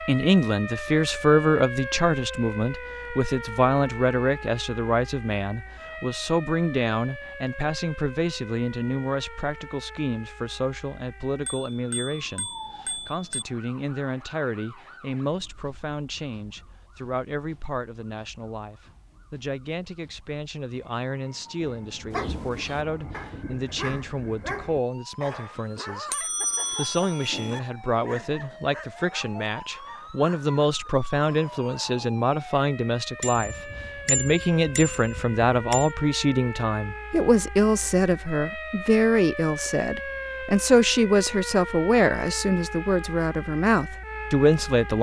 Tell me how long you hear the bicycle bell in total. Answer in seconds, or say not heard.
6 s.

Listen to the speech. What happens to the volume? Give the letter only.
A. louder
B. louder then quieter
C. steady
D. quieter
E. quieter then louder
E.